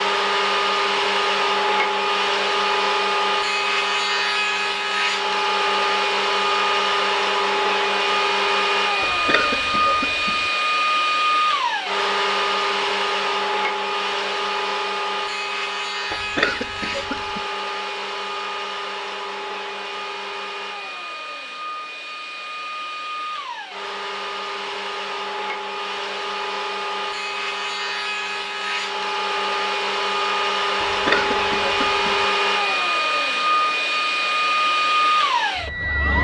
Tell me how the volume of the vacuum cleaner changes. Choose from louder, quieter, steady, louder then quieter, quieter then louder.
quieter then louder.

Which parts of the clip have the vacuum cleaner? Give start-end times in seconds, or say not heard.
0.0-36.1.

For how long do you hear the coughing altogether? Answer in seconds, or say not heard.
4 s.